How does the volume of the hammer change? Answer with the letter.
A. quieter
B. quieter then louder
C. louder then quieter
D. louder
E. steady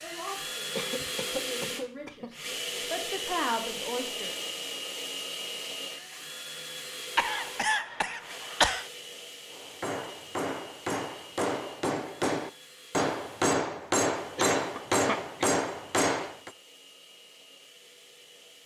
D.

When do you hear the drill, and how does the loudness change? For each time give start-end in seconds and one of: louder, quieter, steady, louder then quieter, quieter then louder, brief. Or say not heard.
0.0-18.6 quieter.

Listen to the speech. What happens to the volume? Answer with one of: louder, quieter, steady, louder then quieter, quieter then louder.
louder.